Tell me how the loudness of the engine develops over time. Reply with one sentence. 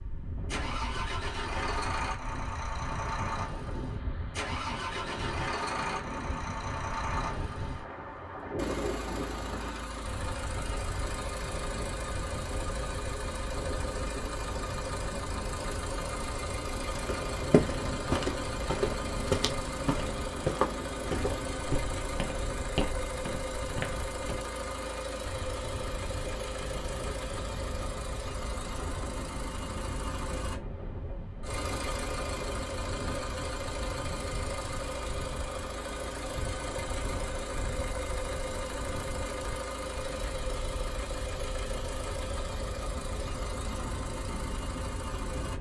The volume of the engine stays about the same.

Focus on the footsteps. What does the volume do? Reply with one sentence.
The loudness of the footsteps goes down.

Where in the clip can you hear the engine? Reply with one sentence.
The engine can be heard from 0.0 to 45.5 s.